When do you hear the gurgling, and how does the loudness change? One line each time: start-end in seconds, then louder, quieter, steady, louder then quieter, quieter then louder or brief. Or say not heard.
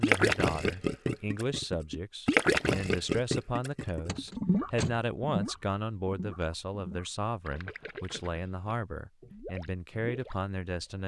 0.0-11.0 quieter.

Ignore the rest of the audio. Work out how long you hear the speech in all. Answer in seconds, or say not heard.
11 s.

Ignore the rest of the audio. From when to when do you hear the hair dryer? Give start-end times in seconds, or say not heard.
not heard.